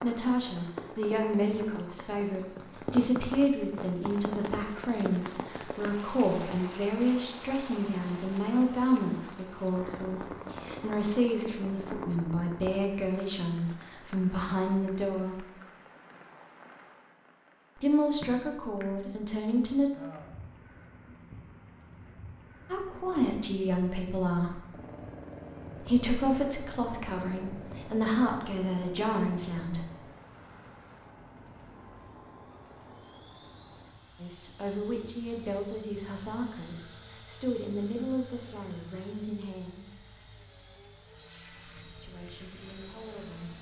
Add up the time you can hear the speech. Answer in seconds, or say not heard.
31 s.